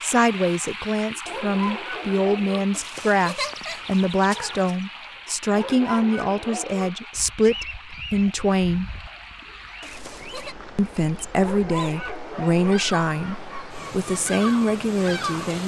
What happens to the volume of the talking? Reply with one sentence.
The volume of the talking stays about the same.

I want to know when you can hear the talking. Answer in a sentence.
You can hear the talking from 0.0 to 8.9 s and from 10.8 to 15.6 s.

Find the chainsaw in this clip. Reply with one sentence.
You can't hear the chainsaw here.